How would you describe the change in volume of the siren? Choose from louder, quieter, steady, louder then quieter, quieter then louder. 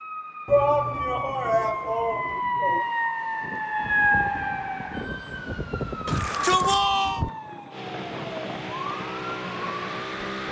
louder then quieter.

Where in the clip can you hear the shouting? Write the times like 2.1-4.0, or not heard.
0.5-2.9, 6.0-7.2.